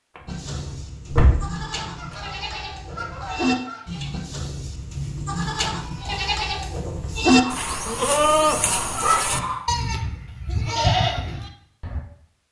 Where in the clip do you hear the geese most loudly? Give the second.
9 s.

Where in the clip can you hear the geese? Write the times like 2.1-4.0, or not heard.
1.9-4.0, 7.3-9.7.